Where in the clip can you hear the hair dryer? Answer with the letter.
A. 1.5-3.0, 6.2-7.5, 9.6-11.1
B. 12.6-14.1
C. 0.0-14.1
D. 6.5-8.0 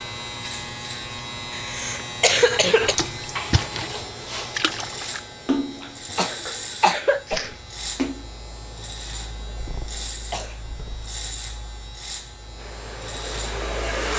B.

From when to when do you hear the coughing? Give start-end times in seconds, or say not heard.
1.5-3.0, 6.2-7.5, 9.6-11.1.